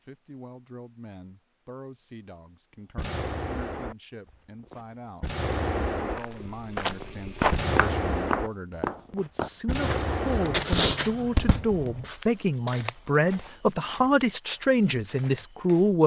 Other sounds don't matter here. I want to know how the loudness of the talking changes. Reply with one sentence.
The volume of the talking goes up.